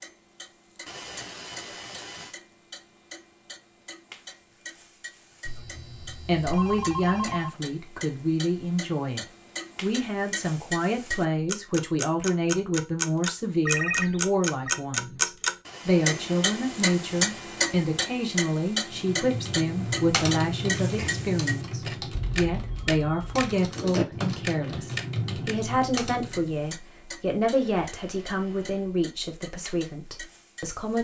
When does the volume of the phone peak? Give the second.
14 s.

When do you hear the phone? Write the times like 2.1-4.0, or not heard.
5.5-7.6, 13.7-14.8, 22.1-23.4.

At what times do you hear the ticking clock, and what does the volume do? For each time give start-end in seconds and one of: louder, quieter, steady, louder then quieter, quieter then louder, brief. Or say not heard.
0.0-30.9 louder then quieter.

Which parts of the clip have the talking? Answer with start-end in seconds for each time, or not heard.
6.0-30.9.